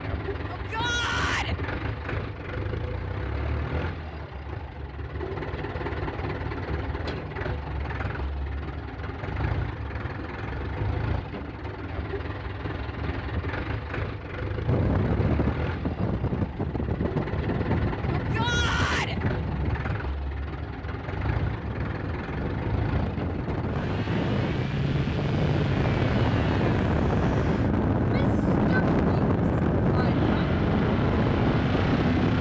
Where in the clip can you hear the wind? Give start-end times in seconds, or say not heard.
14.7-32.3.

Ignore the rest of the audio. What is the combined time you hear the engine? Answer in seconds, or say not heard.
32 s.